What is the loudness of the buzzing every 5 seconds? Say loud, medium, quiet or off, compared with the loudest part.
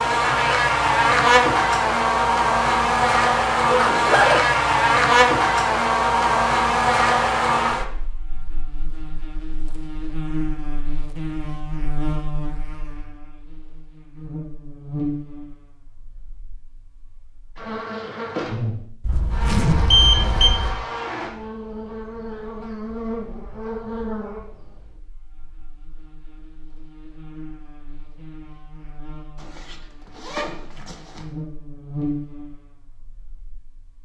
loud, loud, quiet, quiet, quiet, quiet, quiet.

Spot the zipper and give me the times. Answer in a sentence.
The zipper can be heard from 3.7 to 4.5 s, from 19.0 to 20.9 s and from 29.4 to 31.2 s.